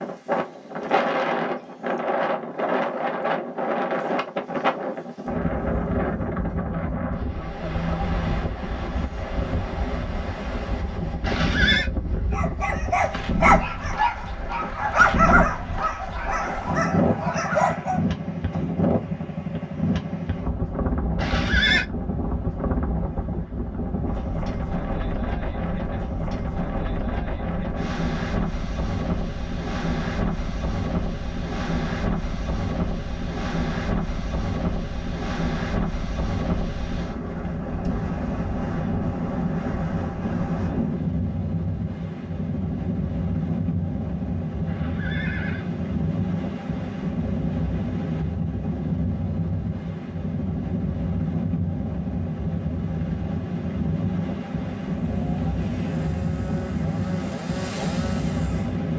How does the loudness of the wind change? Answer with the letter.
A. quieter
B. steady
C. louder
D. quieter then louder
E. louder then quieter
B.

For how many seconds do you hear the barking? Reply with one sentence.
The barking can be heard for 6 seconds in total.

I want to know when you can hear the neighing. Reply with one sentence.
The neighing can be heard from 11.2 to 11.9 s, from 21.1 to 21.9 s and from 44.6 to 45.7 s.